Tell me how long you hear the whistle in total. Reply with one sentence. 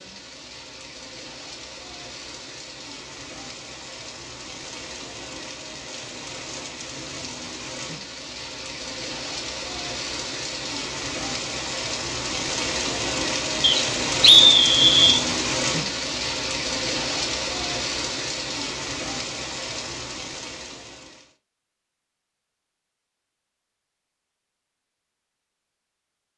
The whistle can be heard for 2 seconds in total.